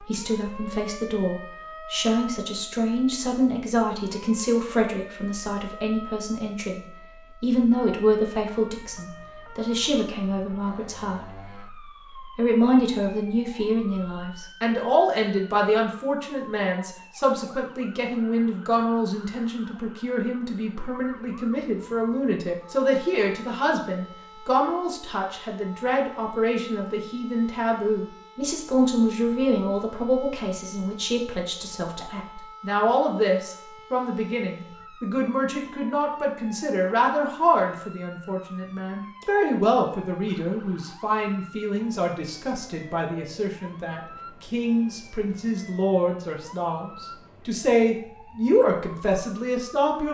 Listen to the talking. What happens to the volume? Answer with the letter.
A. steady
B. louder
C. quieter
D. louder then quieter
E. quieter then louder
A.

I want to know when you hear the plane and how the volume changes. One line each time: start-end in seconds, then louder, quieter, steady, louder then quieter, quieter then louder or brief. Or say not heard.
not heard.